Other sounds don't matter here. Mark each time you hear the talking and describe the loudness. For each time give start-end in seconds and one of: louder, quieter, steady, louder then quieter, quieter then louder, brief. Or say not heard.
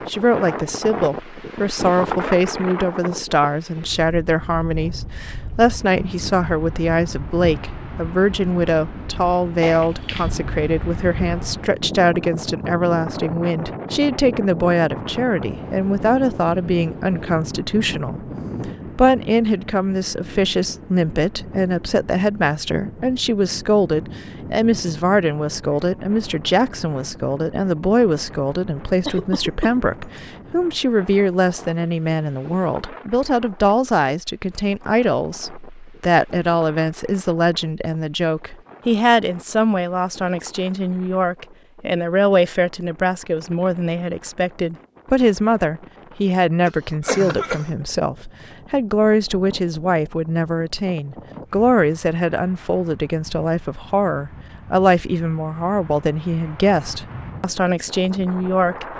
0.1-58.9 steady.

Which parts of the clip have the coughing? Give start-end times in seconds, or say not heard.
9.6-10.3, 29.1-29.8, 46.6-47.6.